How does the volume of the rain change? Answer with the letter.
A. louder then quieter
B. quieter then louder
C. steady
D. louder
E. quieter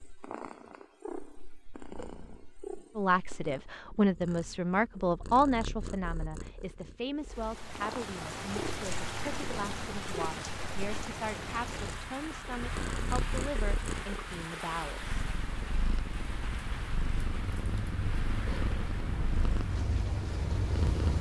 E.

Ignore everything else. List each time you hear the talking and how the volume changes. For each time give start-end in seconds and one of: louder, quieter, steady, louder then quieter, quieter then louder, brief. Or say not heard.
3.0-15.2 quieter.